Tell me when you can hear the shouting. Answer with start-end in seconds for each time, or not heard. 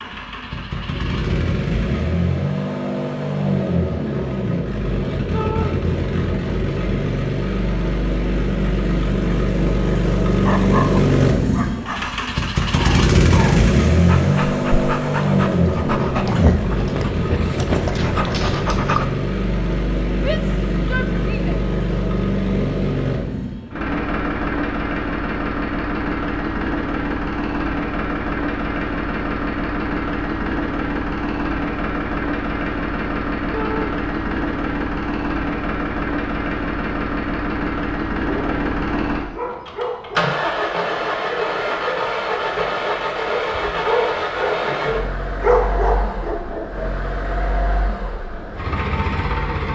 5.3-5.8, 20.1-21.6, 33.5-34.0.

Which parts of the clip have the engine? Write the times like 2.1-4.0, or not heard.
0.0-49.7.